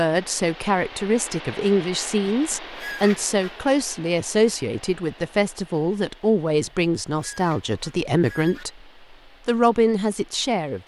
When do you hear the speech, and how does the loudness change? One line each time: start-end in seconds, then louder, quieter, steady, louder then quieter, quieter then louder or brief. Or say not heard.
0.0-8.8 steady
9.4-10.8 brief.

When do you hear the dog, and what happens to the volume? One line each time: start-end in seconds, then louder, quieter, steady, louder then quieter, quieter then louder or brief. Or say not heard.
not heard.